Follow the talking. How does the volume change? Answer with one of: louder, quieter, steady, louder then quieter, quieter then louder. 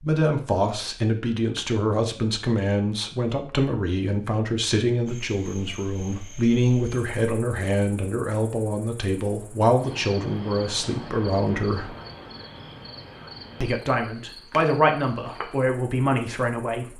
steady.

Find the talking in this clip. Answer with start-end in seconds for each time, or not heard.
0.0-11.9, 13.6-16.9.